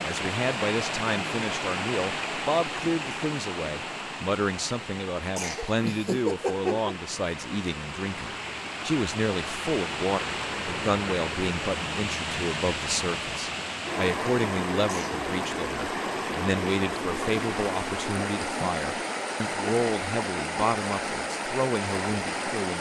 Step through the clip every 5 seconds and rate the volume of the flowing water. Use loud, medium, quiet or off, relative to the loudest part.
loud, medium, loud, loud, loud.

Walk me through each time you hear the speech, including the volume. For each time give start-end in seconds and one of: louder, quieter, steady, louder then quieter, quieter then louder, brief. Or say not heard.
0.0-22.7 steady.